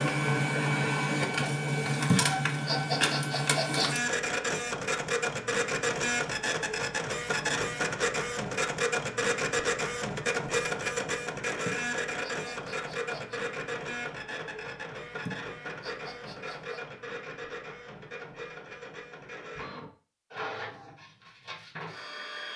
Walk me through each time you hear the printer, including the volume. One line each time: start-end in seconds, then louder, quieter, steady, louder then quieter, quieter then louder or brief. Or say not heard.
0.0-22.5 quieter.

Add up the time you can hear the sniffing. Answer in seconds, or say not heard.
5 s.